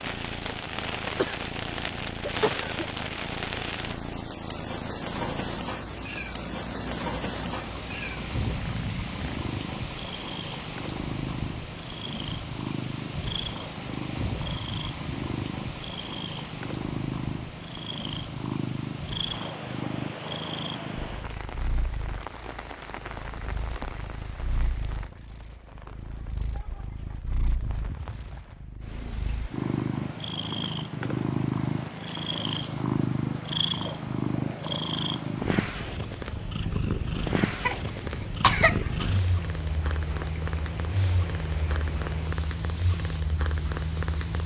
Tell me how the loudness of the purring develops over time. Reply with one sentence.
The volume of the purring goes up.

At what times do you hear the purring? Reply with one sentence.
The purring can be heard from 0.0 to 44.4 s.